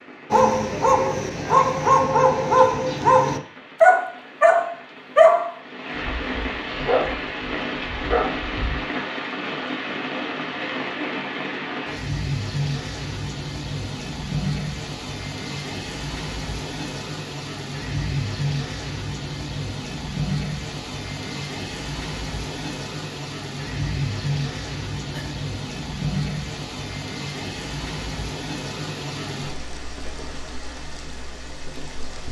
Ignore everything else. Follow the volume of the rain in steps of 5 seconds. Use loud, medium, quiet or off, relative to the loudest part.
quiet, loud, loud, loud, loud, loud, medium.